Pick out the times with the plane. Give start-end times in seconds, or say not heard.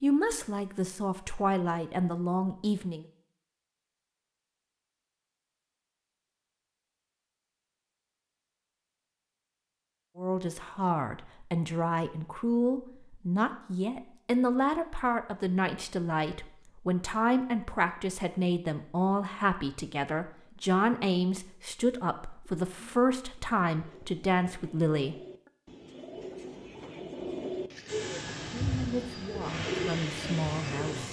27.9-31.0.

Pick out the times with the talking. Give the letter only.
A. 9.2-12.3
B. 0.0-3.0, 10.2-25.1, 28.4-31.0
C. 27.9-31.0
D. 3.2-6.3
B.